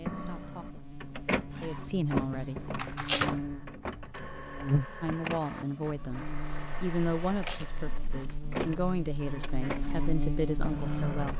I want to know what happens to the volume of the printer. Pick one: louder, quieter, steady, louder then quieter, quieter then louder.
quieter.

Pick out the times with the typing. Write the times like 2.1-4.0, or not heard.
2.1-3.5.